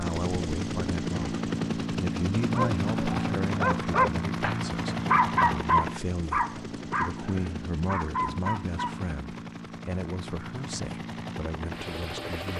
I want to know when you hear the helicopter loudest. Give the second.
3 s.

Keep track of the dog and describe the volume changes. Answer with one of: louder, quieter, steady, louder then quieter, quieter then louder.
louder then quieter.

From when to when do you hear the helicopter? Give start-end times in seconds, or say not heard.
0.0-12.5.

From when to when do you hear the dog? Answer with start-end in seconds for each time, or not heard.
2.4-9.0.